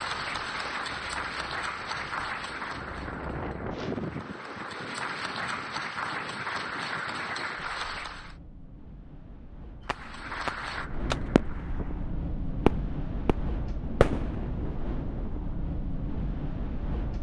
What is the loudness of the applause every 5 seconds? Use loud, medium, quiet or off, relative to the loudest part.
loud, loud, medium, off.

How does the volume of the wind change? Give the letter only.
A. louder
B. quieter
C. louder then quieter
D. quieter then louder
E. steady
D.